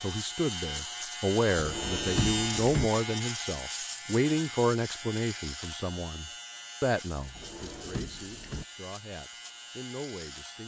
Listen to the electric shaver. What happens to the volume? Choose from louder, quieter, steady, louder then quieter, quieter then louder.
quieter.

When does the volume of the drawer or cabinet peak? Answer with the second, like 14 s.
2 s.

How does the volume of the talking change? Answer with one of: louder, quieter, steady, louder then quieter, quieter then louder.
quieter.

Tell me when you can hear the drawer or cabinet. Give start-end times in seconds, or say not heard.
1.6-2.9, 7.3-8.7.